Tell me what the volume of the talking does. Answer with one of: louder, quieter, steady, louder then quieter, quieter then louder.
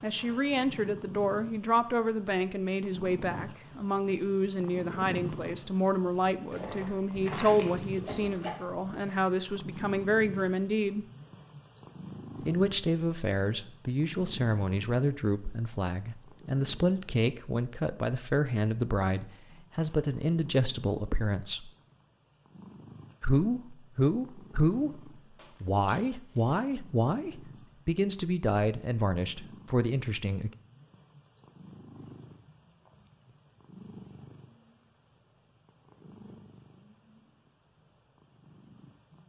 steady.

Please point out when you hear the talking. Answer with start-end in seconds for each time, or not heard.
0.0-11.1, 12.4-21.7, 23.2-30.5.